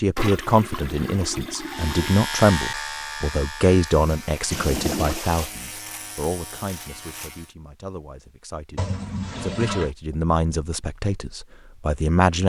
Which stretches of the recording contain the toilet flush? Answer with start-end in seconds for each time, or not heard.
0.1-2.1, 4.5-5.5, 8.8-9.9.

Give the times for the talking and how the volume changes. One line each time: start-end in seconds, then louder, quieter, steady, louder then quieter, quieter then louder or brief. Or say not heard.
0.0-12.4 quieter then louder.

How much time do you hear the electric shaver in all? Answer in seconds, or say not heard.
6 s.